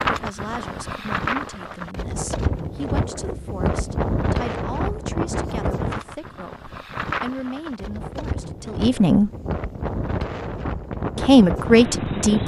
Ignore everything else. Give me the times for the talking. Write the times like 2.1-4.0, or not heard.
0.1-9.3, 11.2-12.4.